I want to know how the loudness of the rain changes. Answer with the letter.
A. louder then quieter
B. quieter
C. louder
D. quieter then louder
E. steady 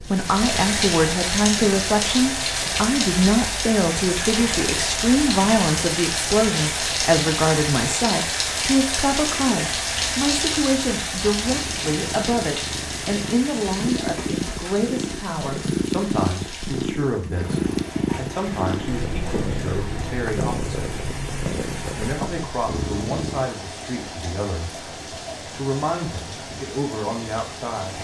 B.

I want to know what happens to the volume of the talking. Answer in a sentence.
The loudness of the talking goes down.